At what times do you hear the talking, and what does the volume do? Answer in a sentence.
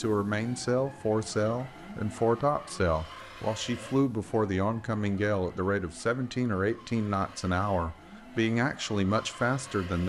The talking can be heard from 0.0 to 10.0 s, at a steady volume.